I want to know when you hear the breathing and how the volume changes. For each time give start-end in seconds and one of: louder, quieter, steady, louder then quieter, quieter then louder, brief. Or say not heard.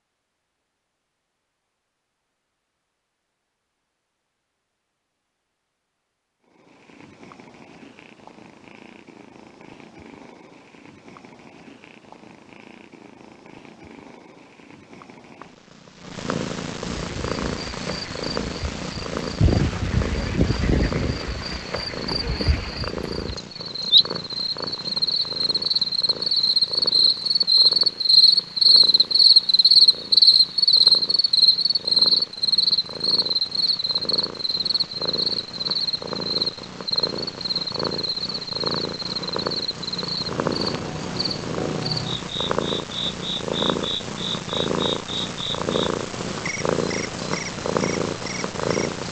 not heard.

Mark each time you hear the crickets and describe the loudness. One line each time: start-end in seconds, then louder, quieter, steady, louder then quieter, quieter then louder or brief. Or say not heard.
16.8-48.8 louder then quieter.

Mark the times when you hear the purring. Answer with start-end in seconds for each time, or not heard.
6.4-49.0.